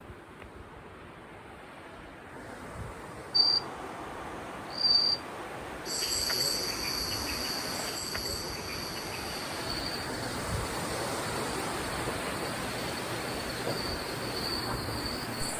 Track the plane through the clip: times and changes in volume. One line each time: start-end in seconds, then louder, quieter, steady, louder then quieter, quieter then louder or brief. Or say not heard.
not heard.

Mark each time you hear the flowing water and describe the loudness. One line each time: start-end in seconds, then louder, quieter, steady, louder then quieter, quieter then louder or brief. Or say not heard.
0.0-15.5 louder.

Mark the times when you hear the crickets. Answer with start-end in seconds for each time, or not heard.
3.3-15.5.